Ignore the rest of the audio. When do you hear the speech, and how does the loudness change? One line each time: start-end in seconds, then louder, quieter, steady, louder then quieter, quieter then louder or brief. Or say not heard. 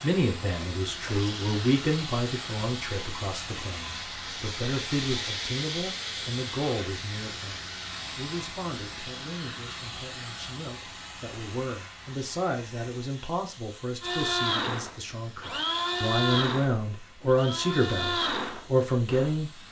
0.0-19.6 quieter then louder.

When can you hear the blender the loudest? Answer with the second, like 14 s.
16 s.